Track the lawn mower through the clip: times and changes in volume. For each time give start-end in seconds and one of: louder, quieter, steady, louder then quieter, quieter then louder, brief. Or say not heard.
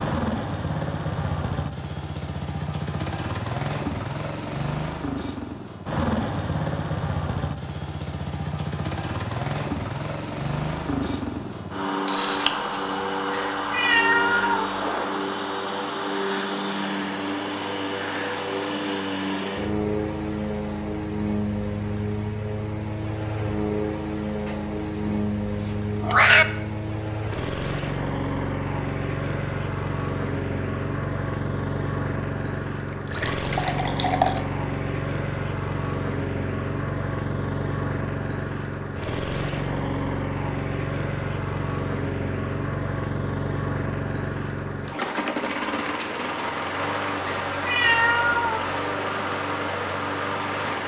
0.0-50.8 steady.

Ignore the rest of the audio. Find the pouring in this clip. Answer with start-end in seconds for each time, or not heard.
12.1-13.0, 32.9-34.5.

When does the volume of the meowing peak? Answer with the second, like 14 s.
26 s.